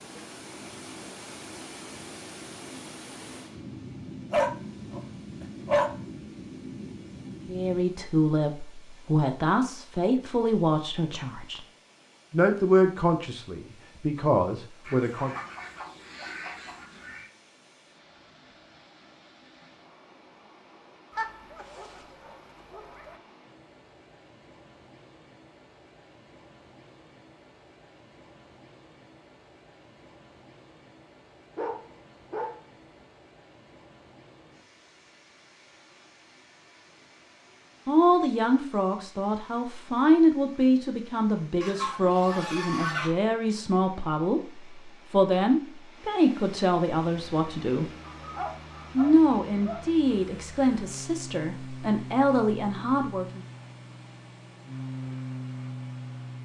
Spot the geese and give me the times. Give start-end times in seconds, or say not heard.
14.8-17.3, 41.6-43.1.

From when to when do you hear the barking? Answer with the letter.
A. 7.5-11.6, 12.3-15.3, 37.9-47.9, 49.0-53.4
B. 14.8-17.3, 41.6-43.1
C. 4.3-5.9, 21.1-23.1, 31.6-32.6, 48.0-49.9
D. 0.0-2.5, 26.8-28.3
C.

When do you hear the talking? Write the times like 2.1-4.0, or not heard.
7.5-11.6, 12.3-15.3, 37.9-47.9, 49.0-53.4.